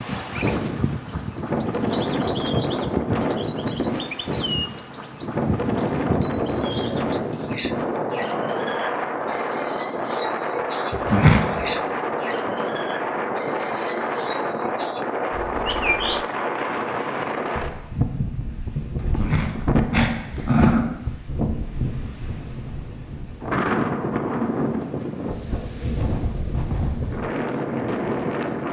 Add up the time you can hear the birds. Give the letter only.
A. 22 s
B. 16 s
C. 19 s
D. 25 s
B.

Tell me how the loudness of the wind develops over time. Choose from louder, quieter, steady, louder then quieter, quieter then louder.
steady.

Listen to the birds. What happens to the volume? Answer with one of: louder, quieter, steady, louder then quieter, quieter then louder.
steady.